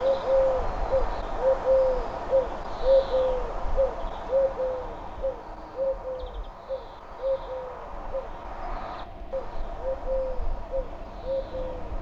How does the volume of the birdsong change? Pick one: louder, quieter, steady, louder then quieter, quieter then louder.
quieter.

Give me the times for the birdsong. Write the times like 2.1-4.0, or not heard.
0.0-11.9.